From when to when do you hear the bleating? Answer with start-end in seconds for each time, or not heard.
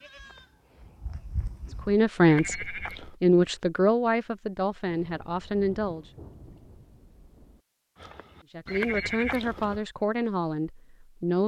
0.0-3.1, 8.0-9.8.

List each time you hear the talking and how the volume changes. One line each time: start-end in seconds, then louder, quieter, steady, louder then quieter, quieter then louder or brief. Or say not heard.
1.9-6.0 quieter
8.5-11.4 brief.